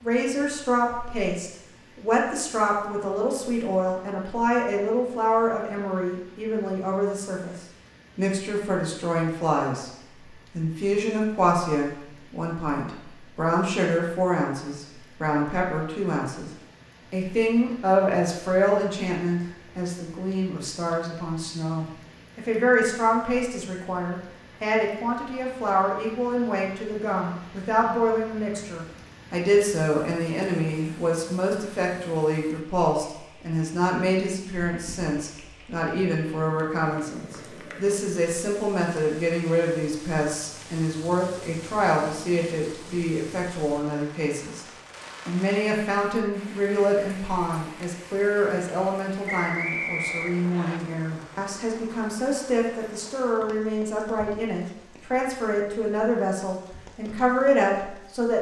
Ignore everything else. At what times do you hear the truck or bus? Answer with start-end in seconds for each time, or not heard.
not heard.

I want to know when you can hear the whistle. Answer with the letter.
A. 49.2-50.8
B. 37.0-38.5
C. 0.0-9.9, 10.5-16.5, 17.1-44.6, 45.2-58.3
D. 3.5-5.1
A.